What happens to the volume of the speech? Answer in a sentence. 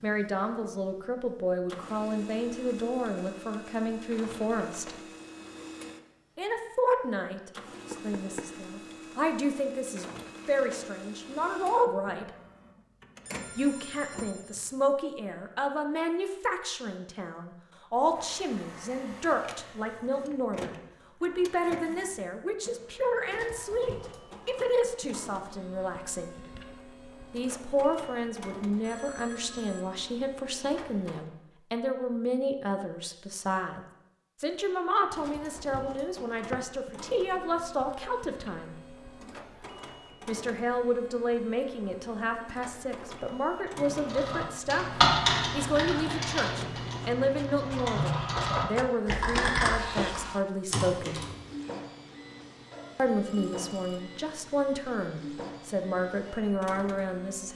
The loudness of the speech stays about the same.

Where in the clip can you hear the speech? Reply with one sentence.
You can hear the speech from 0.0 to 5.0 s, from 6.3 to 12.3 s, from 13.6 to 26.4 s, from 27.3 to 38.8 s, from 40.2 to 51.2 s and from 53.0 to 57.5 s.